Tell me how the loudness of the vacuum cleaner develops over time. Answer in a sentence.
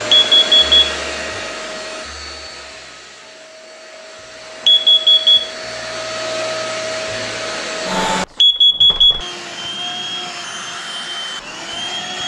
The loudness of the vacuum cleaner goes down, then up.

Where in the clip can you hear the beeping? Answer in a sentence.
The beeping can be heard from 0.1 to 0.8 s, from 4.7 to 5.5 s and from 8.4 to 9.2 s.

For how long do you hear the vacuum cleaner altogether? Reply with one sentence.
The vacuum cleaner can be heard for 12 seconds in total.